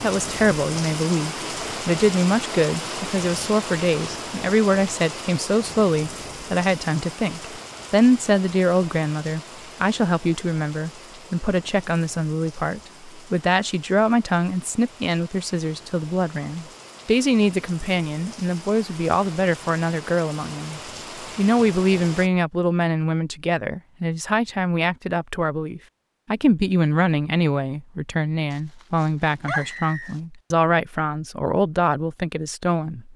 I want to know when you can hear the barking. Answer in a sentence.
You can hear the barking from 28.5 to 30.2 s.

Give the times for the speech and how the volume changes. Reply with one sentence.
The speech can be heard from 0.0 to 33.1 s, at a steady volume.